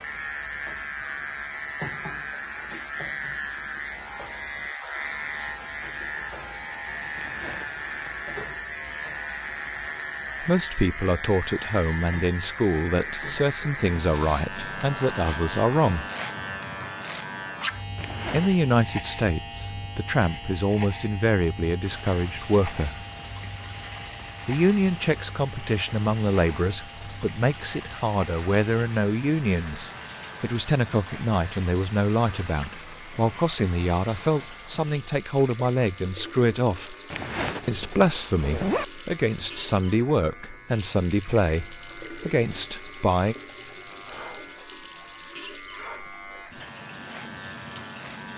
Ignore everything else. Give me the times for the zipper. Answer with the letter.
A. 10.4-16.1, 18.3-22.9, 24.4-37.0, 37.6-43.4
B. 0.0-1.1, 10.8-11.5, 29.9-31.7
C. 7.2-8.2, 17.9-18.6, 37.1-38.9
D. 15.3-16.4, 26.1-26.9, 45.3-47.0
C.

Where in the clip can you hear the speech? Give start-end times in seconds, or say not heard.
10.4-16.1, 18.3-22.9, 24.4-37.0, 37.6-43.4.